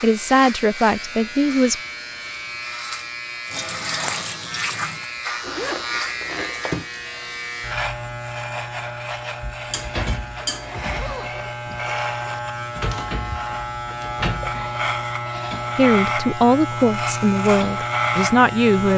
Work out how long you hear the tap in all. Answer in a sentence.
You can hear the tap for 2 seconds altogether.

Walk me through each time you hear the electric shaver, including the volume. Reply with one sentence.
You can hear the electric shaver from 0.0 to 18.9 s, getting louder.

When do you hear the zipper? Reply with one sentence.
You can hear the zipper from 5.4 to 6.8 s and from 10.5 to 12.4 s.